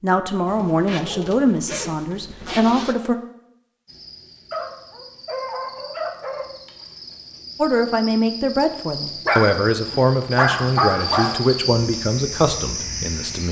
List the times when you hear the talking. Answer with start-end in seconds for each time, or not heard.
0.0-3.1, 7.5-13.4.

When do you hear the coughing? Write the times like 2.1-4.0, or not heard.
not heard.